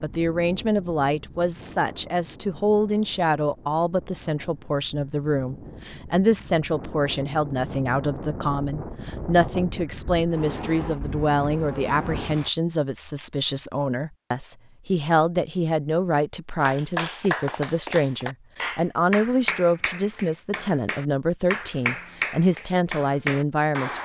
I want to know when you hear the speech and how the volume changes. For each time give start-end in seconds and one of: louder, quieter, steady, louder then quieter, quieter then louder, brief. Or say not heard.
0.0-24.0 steady.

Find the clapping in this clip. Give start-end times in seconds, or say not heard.
16.6-24.0.